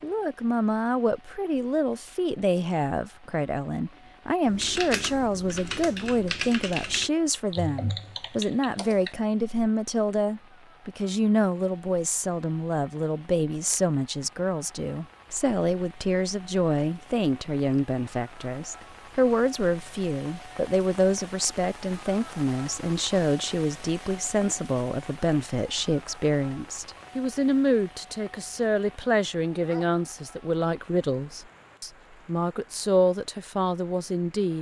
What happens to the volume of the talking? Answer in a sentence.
The loudness of the talking stays about the same.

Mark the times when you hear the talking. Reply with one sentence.
The talking can be heard from 0.0 to 34.5 s.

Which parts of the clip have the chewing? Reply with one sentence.
The chewing can't be heard in this clip.